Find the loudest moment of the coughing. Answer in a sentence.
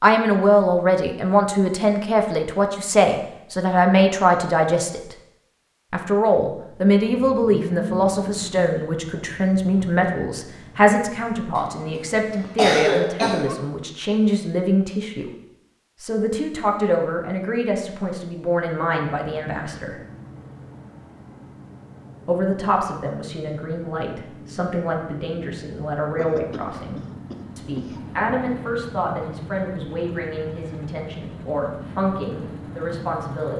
The loudest moment of the coughing is at 13 seconds.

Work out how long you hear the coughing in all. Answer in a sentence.
The coughing can be heard for 4 seconds in total.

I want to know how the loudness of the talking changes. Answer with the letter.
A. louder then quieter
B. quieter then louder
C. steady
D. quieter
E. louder
D.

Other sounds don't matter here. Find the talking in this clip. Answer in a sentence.
You can hear the talking from 0.0 to 5.2 s, from 5.9 to 15.3 s, from 16.0 to 20.0 s and from 22.2 to 33.5 s.